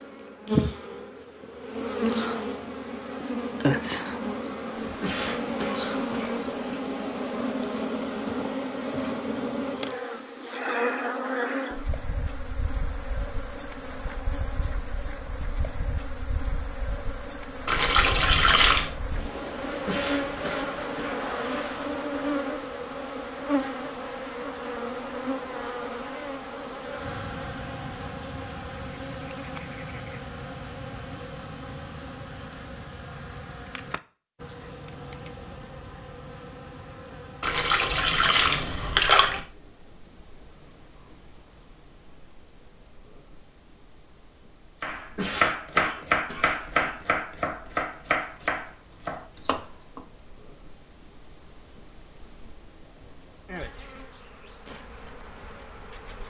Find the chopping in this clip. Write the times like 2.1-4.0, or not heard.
44.8-50.0.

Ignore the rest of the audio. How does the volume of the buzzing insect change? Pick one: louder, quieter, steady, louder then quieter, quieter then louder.
quieter.